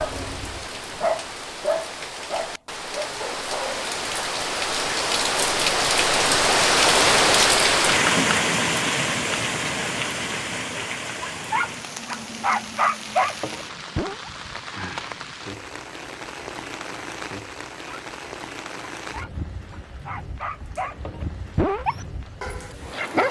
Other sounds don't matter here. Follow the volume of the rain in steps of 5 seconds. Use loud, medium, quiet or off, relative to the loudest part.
medium, loud, quiet, quiet, quiet.